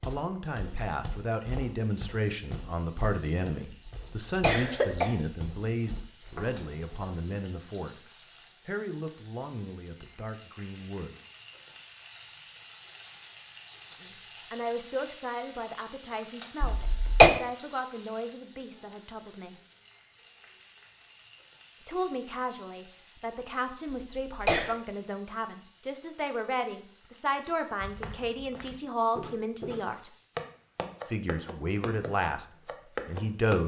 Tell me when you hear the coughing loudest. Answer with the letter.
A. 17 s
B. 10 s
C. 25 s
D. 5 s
A.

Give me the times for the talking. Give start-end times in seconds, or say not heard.
0.1-8.1, 8.7-11.2, 13.9-19.6, 21.8-30.1, 31.1-33.6.